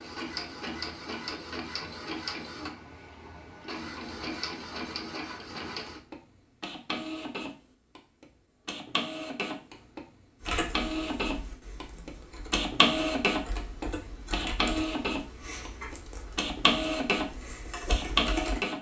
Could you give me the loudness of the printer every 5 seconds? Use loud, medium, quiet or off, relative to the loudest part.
medium, medium, loud, loud.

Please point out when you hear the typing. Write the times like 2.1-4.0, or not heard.
10.4-18.6.